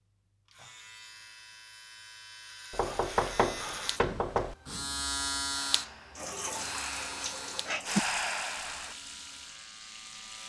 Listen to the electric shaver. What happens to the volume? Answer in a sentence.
The loudness of the electric shaver goes up, then down.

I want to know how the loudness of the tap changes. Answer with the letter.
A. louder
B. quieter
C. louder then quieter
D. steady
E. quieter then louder
C.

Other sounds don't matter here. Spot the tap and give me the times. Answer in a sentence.
The tap can be heard from 6.2 to 10.4 s.